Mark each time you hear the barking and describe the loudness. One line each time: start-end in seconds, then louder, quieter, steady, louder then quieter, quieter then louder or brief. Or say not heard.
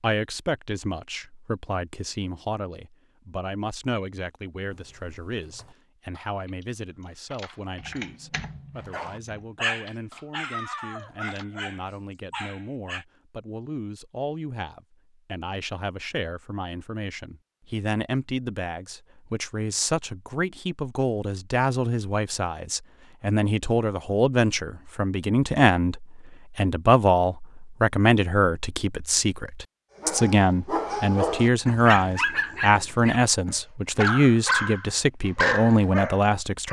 8.8-13.1 quieter
29.9-36.6 quieter then louder.